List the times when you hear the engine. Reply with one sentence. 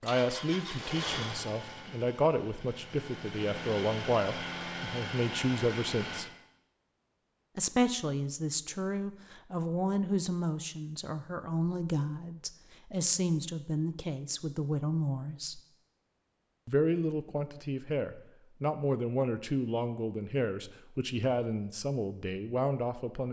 You can hear the engine from 0.0 to 6.2 s.